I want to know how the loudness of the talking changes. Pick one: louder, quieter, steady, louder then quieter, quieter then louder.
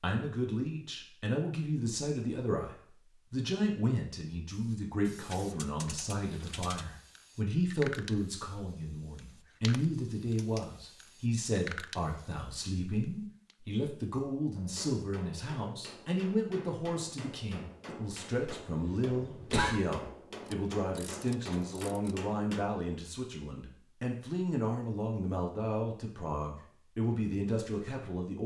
steady.